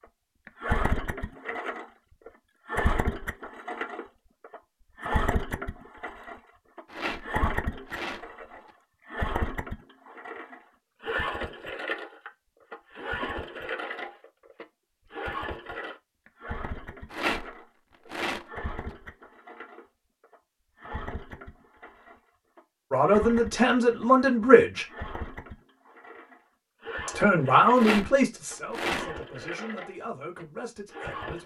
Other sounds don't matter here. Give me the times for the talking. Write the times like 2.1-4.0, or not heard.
22.9-24.9, 27.1-31.4.